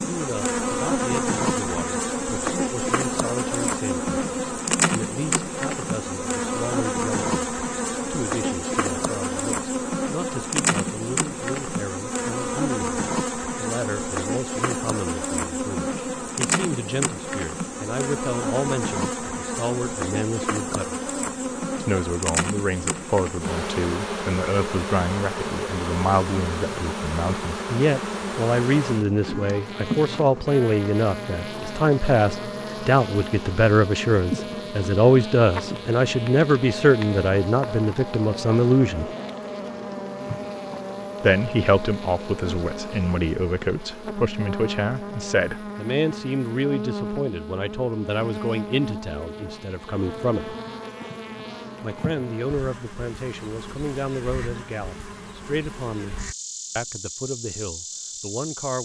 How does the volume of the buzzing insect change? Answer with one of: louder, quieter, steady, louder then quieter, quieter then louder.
quieter.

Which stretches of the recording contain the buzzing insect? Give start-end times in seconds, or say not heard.
0.0-58.8.